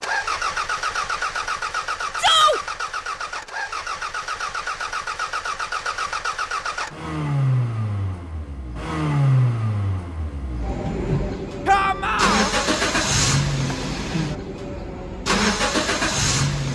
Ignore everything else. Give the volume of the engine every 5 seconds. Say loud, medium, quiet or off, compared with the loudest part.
medium, loud, loud, loud.